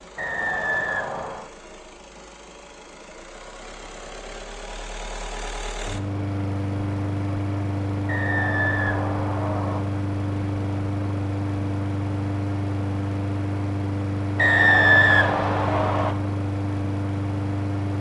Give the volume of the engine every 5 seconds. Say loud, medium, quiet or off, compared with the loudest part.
quiet, loud, loud, loud.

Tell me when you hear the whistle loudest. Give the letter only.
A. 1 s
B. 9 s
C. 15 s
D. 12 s
C.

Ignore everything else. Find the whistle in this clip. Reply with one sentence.
The whistle can be heard from 0.1 to 1.4 s, from 8.1 to 9.8 s and from 14.3 to 16.1 s.